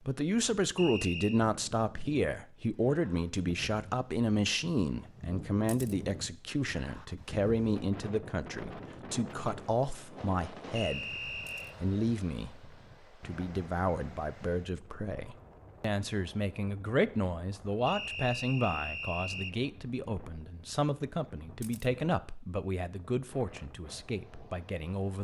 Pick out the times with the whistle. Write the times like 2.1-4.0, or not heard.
0.8-1.4, 10.8-11.8, 17.9-19.6.